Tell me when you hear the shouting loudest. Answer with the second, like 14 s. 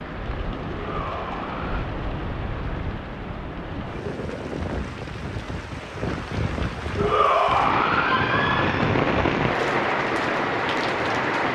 7 s.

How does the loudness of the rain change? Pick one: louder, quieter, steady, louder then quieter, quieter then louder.
louder.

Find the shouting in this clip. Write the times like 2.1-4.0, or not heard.
0.7-1.9, 7.0-8.9.